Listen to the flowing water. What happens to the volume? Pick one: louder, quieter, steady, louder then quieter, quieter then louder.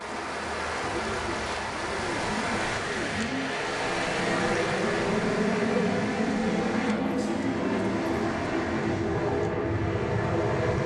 quieter.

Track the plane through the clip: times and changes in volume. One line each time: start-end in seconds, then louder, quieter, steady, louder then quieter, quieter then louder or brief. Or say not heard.
0.0-10.8 louder.